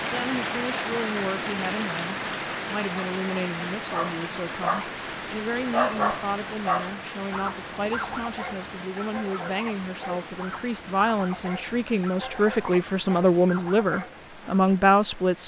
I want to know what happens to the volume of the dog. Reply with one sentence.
The volume of the dog goes down.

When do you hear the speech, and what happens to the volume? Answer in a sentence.
The speech can be heard from 0.1 to 15.4 s, getting louder.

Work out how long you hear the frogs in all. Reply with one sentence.
You can't hear the frogs here.